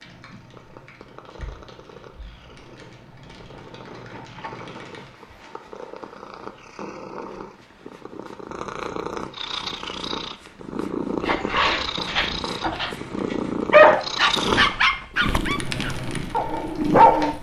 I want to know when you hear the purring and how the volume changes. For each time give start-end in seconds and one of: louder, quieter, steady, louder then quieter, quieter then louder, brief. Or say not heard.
0.2-17.3 louder.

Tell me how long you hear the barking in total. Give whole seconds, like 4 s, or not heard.
6 s.